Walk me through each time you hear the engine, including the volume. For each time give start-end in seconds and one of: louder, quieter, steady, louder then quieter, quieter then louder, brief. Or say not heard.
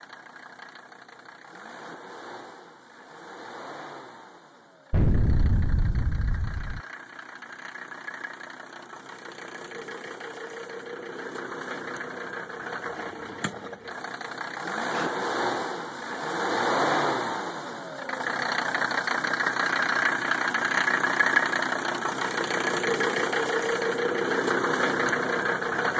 0.0-25.9 louder.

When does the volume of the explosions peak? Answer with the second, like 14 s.
5 s.